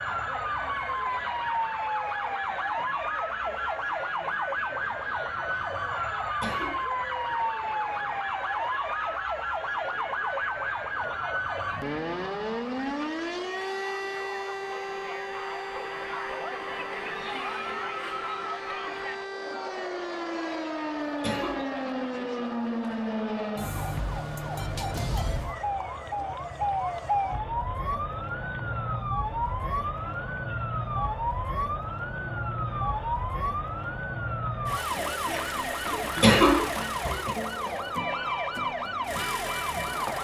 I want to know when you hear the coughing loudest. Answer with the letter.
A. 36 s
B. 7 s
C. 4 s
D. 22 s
A.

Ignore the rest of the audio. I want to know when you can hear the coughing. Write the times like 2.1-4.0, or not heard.
6.2-6.8, 21.2-21.6, 35.9-37.4.